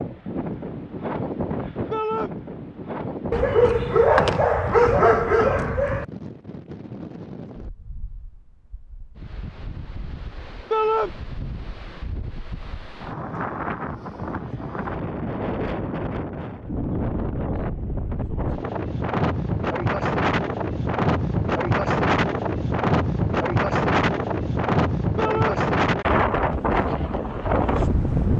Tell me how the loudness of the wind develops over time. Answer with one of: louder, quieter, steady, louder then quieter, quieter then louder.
quieter then louder.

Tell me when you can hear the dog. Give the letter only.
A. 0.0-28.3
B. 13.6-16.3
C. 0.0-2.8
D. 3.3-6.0
D.